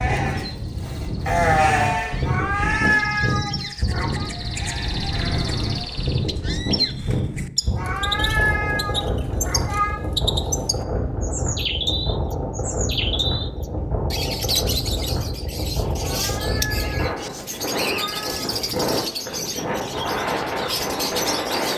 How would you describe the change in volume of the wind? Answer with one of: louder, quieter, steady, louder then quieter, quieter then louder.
steady.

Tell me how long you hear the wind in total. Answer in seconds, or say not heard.
22 s.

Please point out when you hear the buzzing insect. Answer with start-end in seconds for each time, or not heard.
not heard.